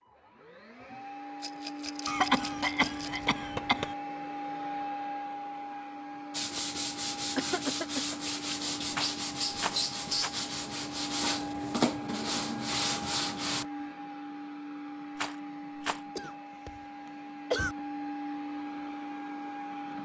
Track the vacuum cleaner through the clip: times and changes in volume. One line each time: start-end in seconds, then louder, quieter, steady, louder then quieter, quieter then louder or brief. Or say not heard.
0.1-20.0 steady.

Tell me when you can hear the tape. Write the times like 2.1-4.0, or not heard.
not heard.